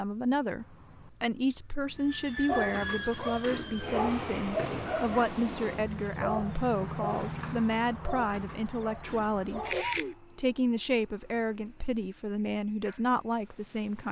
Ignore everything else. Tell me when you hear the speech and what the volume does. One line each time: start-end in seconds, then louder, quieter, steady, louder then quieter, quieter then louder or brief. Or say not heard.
0.0-14.0 steady.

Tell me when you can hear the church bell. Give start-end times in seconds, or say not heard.
not heard.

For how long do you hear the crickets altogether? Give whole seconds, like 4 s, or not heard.
14 s.